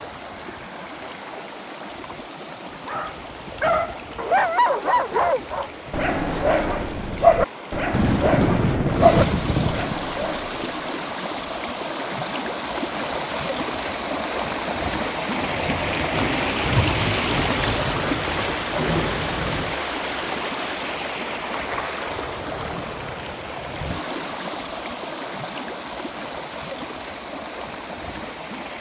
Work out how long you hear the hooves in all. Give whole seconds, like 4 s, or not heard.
not heard.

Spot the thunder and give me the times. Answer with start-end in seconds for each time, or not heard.
7.9-9.9, 15.4-19.8.